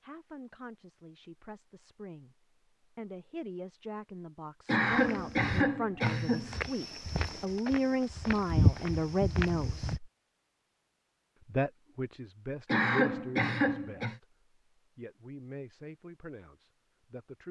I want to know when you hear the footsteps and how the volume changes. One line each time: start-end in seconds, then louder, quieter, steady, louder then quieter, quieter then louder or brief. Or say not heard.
4.9-10.0 louder then quieter.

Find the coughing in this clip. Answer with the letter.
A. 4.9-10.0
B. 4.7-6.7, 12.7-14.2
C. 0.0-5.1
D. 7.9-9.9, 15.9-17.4
B.